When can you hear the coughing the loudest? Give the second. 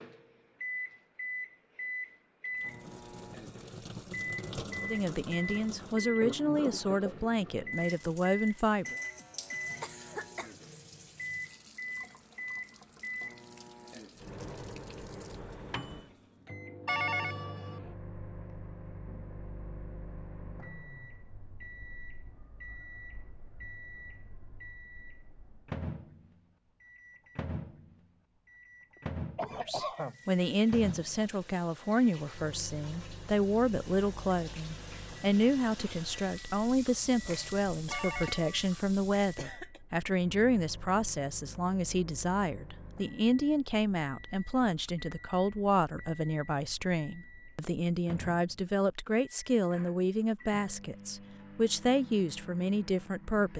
30 s.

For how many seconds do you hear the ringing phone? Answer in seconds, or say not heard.
2 s.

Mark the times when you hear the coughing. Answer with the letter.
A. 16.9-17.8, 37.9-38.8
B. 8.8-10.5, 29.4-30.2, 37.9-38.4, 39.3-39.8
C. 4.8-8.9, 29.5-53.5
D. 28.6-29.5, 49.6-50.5
B.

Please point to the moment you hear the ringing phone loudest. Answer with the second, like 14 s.
17 s.